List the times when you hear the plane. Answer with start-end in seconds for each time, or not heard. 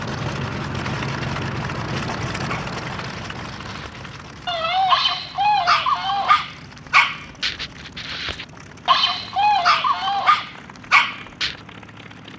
0.0-12.3.